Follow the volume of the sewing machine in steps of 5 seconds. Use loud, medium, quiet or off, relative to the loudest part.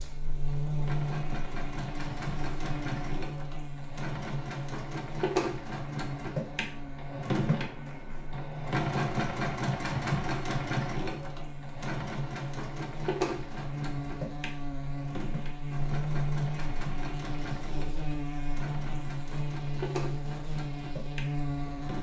medium, loud, loud, medium, medium.